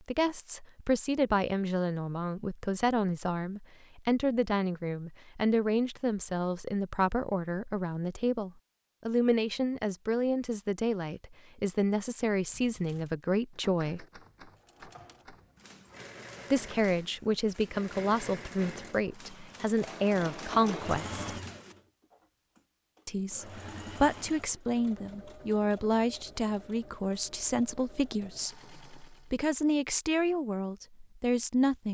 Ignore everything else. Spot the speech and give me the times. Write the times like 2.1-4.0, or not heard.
0.1-14.0, 16.5-21.2, 23.1-31.8.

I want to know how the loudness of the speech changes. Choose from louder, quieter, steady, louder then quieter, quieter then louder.
steady.